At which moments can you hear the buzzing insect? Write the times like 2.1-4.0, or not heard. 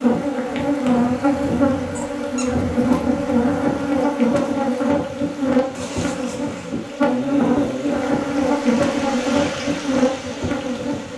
0.0-11.1.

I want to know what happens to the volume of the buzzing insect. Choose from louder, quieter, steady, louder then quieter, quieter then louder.
steady.